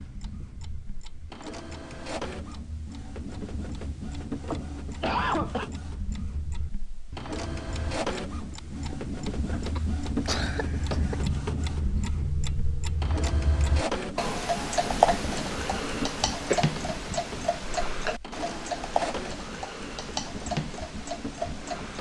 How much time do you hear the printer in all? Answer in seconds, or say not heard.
22 s.